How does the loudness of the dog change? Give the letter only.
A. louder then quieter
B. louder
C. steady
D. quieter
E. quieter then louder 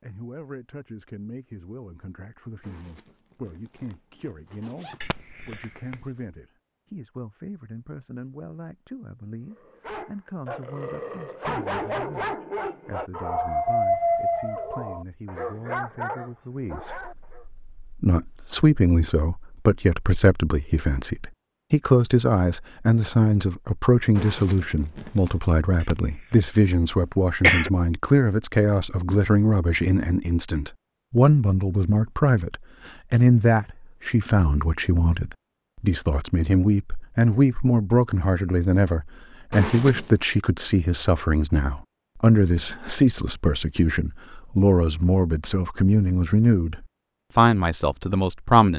A.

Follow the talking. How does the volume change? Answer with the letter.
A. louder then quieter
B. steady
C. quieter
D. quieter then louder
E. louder
E.